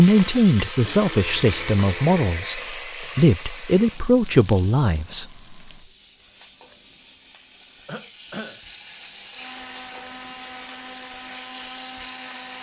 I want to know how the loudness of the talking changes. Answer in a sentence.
The volume of the talking goes down, then up.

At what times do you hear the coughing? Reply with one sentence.
The coughing can be heard from 7.8 to 8.6 s.